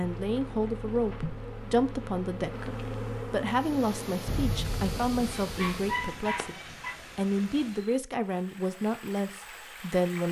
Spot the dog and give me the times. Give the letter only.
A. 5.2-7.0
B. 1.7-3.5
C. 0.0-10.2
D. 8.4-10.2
A.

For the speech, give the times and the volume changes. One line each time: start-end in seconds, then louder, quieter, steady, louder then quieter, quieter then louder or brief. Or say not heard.
0.0-10.2 steady.